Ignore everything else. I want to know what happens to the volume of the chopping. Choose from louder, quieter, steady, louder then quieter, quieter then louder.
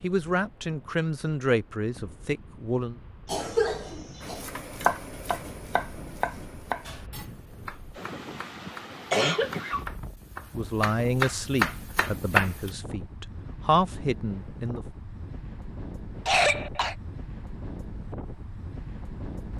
quieter then louder.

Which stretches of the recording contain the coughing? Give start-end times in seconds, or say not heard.
3.2-4.5, 9.1-9.8, 16.2-16.9.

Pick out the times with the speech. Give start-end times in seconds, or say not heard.
0.0-3.0, 10.5-14.8.